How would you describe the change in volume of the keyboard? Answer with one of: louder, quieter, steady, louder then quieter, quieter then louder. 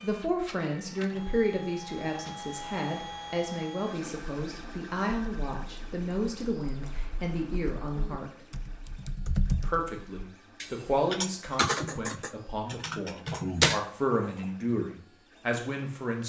louder.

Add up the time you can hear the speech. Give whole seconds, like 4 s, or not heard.
15 s.